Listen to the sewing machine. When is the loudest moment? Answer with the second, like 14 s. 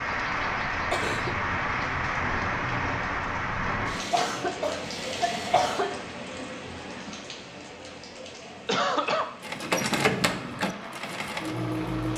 10 s.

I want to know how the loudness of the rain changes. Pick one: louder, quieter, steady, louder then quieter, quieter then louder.
quieter.